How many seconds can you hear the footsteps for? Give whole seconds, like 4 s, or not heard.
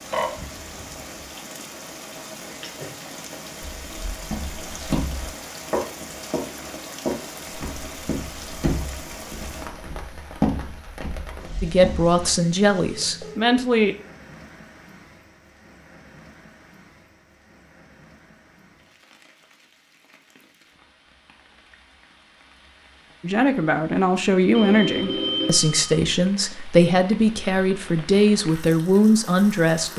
9 s.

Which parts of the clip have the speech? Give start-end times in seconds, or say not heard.
11.6-13.9, 23.2-29.9.